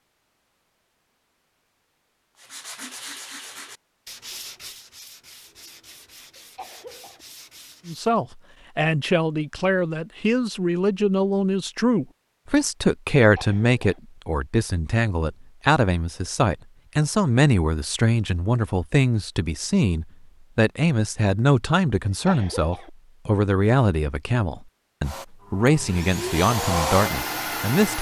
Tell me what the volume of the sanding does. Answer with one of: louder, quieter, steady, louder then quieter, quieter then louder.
quieter.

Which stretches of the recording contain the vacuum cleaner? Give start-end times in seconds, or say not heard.
25.0-27.9.